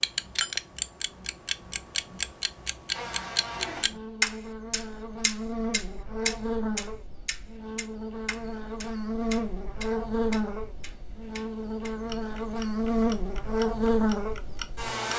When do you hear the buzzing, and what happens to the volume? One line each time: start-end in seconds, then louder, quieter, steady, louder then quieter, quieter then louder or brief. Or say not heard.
2.9-15.1 louder.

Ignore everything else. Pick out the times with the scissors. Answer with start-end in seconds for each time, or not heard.
not heard.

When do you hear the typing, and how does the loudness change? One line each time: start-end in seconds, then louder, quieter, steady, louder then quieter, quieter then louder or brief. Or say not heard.
not heard.